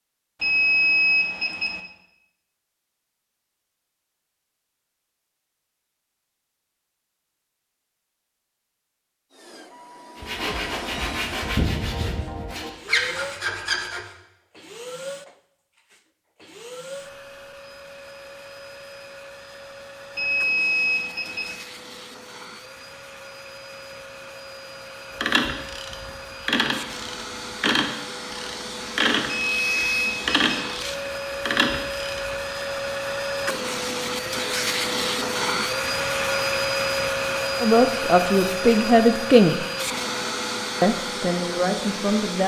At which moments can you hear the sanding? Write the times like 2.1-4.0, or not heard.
10.2-14.1.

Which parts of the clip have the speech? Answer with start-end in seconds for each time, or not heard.
37.6-39.5, 40.8-42.4.